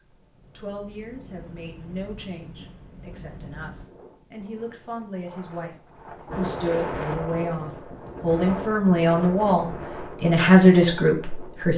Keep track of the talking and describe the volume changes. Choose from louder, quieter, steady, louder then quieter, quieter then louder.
louder.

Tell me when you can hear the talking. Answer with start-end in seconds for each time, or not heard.
0.6-11.7.